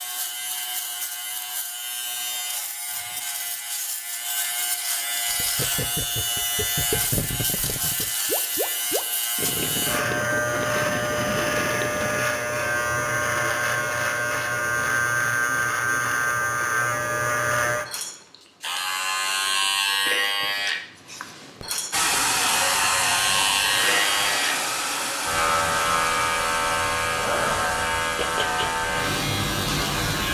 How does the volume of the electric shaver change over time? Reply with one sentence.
The volume of the electric shaver goes up.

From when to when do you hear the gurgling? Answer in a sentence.
You can hear the gurgling from 5.2 to 12.3 s.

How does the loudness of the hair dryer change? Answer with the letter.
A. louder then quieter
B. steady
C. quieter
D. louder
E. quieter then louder
C.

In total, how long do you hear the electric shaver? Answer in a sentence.
The electric shaver can be heard for 30 seconds in total.